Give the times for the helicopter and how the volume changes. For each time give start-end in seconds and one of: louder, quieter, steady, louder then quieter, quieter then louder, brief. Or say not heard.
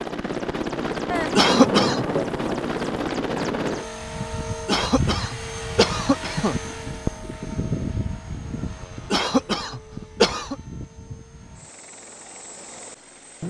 0.0-13.4 quieter.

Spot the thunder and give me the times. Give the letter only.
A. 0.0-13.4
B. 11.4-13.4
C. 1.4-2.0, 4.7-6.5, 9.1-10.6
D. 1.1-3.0
D.